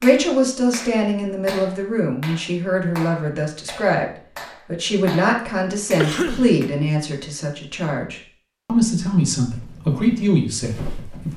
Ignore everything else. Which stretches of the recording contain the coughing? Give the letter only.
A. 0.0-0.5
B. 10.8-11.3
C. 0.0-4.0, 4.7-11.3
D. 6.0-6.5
D.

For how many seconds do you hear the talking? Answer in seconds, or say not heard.
11 s.